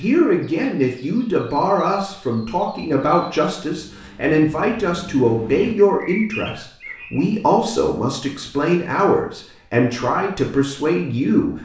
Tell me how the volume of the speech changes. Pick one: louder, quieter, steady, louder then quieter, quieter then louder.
steady.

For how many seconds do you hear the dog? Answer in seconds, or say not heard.
not heard.